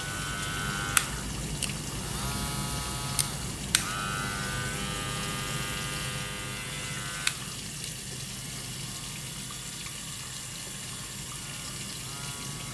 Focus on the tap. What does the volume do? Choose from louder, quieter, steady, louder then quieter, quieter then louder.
steady.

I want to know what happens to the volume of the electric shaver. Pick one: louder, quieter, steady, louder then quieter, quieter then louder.
quieter.